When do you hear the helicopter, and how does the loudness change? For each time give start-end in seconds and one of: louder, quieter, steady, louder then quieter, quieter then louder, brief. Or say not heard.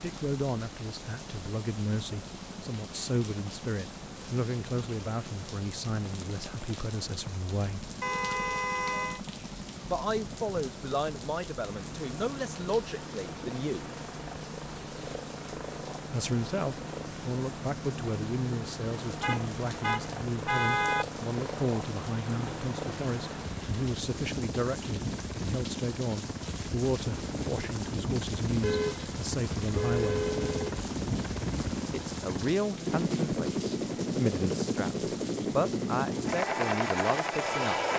0.0-37.9 louder.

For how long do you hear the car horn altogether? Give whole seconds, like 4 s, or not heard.
5 s.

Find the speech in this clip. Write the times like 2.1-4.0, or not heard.
0.0-7.9, 9.8-13.9, 16.1-30.2, 31.9-37.8.